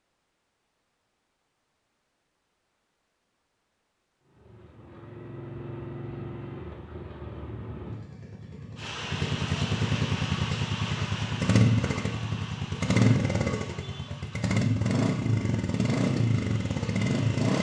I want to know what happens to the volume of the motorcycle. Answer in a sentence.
The volume of the motorcycle goes up.